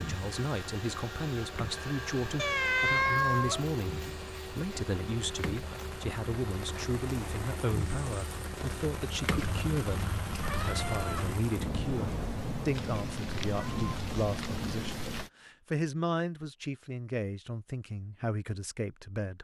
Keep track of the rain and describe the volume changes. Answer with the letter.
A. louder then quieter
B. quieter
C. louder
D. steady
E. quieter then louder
C.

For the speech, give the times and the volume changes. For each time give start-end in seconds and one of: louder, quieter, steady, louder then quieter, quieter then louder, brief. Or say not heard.
0.0-19.3 steady.